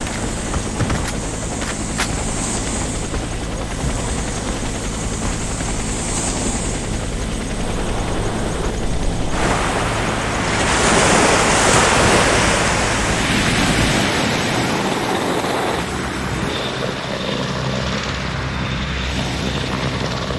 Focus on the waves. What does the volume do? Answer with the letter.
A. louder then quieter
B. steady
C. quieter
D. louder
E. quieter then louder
A.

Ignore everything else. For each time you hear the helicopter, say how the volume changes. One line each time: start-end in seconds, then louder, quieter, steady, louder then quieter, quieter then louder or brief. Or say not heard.
0.0-20.3 steady.